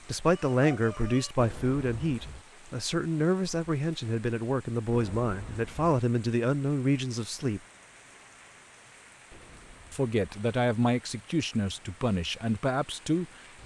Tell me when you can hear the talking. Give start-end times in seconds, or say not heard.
0.1-7.6, 9.9-13.6.